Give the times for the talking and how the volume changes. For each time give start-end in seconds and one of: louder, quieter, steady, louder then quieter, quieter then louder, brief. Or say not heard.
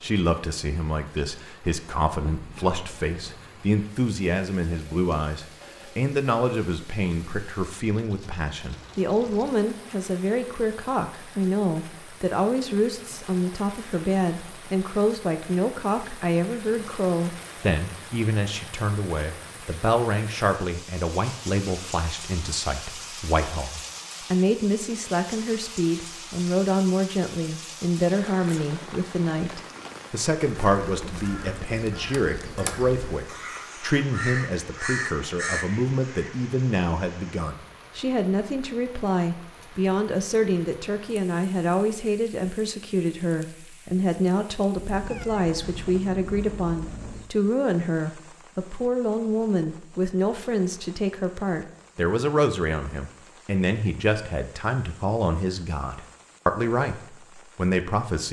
0.0-58.2 steady.